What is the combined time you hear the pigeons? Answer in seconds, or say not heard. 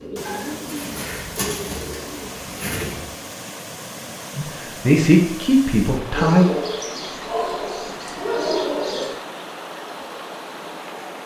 3 s.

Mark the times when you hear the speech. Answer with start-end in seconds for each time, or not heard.
4.3-6.5.